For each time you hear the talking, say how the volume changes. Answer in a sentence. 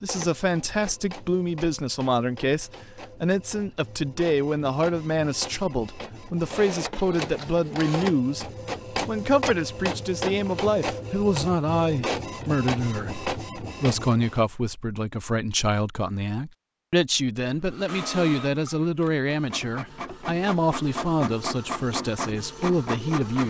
The talking can be heard from 0.0 to 23.4 s, at a steady volume.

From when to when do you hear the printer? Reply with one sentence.
The printer can be heard from 0.0 to 14.4 s and from 17.5 to 23.4 s.